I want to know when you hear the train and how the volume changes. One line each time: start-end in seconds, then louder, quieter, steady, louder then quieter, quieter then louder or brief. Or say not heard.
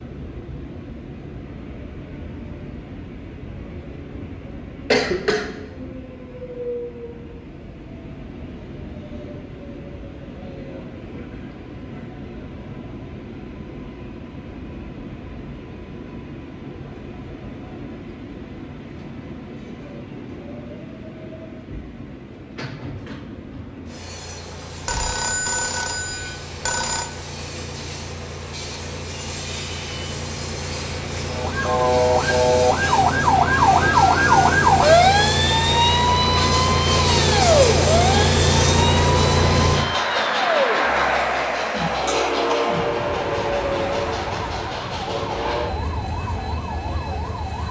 0.0-47.6 louder.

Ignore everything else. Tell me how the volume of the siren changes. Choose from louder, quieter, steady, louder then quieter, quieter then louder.
quieter.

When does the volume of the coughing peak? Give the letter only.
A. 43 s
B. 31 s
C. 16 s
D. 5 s
D.